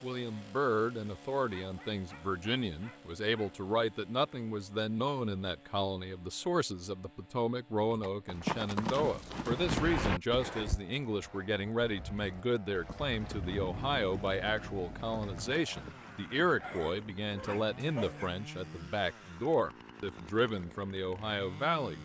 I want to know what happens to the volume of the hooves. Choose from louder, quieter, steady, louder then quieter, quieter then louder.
quieter.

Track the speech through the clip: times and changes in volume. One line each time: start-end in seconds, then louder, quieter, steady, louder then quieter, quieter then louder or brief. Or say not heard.
0.0-21.9 steady.